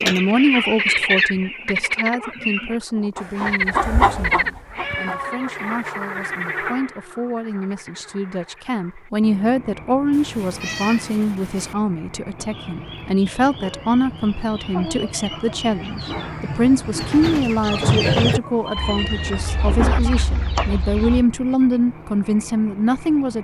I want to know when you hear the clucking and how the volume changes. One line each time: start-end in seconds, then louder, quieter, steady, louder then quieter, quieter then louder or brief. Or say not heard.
0.0-5.2 quieter then louder
12.3-21.2 louder then quieter.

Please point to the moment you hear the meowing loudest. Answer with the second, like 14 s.
20 s.